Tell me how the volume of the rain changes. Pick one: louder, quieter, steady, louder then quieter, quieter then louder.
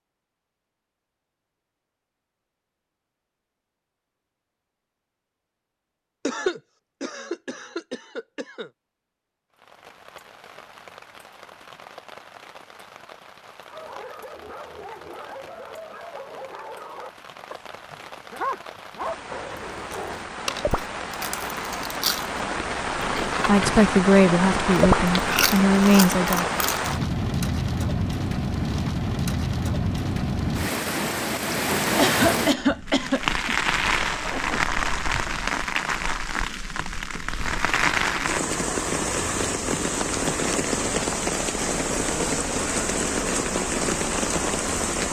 louder.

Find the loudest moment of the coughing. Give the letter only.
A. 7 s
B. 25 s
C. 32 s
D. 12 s
C.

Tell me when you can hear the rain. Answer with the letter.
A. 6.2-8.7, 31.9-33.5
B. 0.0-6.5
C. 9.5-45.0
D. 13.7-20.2
C.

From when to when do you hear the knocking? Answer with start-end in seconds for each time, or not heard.
not heard.